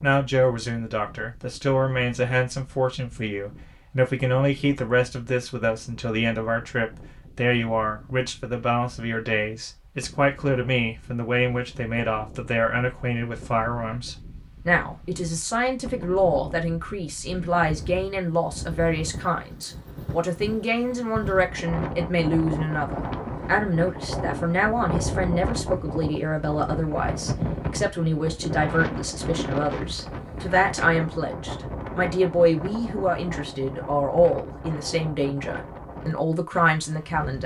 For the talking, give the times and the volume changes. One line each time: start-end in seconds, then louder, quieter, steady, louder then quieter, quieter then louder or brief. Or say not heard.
0.0-37.4 steady.